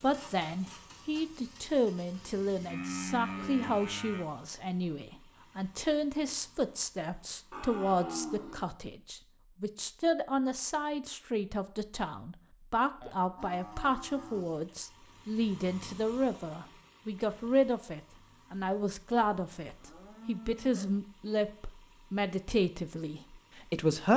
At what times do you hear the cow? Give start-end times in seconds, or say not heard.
2.1-4.2, 7.5-8.7, 13.0-14.6, 19.6-21.0.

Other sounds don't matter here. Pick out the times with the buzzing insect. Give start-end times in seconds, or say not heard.
not heard.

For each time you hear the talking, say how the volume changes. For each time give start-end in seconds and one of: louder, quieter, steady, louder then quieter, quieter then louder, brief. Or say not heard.
0.0-24.1 steady.